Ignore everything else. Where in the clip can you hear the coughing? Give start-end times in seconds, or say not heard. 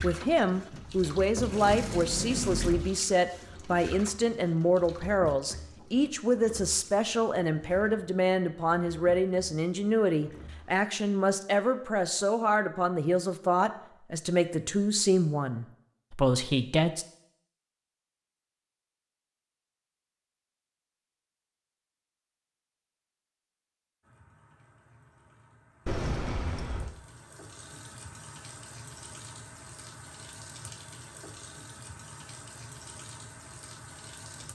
not heard.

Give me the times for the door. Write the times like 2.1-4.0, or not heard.
0.7-2.9, 25.9-26.9.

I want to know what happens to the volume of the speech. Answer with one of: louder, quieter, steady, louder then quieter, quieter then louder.
steady.